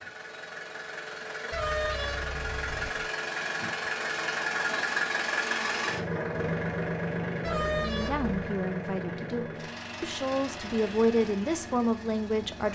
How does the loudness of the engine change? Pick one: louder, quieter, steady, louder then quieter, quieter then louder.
louder then quieter.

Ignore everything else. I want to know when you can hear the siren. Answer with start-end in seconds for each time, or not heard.
not heard.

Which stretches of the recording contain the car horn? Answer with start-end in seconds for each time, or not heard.
1.5-3.1, 7.4-8.4.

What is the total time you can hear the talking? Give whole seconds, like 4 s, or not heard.
5 s.